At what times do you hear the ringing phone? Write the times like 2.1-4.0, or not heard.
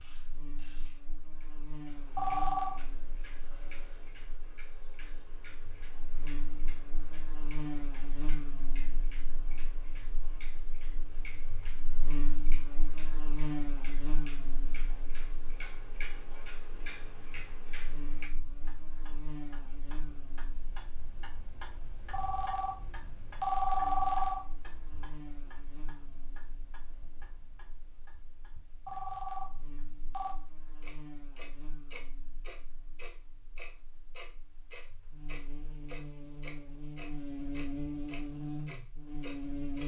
2.1-2.8, 22.1-24.4, 28.9-30.4.